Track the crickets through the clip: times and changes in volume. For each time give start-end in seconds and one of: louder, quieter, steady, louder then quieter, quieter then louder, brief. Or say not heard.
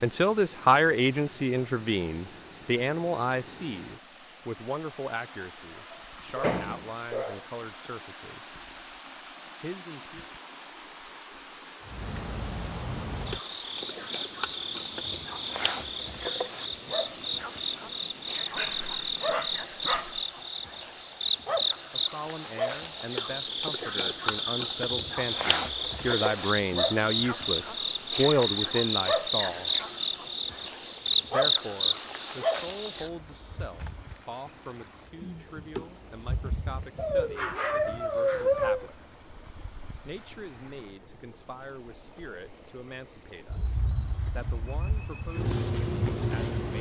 11.8-46.7 louder.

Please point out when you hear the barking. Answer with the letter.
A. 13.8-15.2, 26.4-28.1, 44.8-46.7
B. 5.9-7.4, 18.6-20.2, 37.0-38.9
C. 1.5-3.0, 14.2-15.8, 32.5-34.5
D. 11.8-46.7
B.